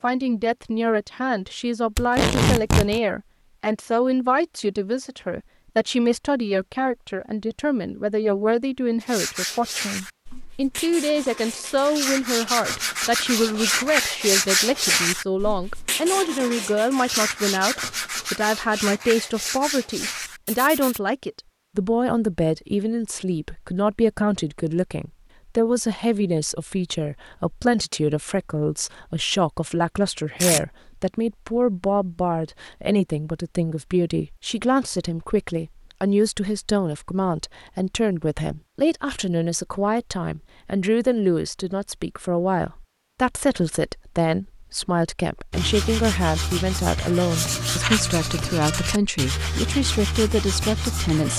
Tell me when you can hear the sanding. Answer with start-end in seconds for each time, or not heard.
9.0-21.0, 45.5-51.3.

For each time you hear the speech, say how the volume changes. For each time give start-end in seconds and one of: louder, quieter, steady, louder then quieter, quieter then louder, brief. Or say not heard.
0.0-51.3 steady.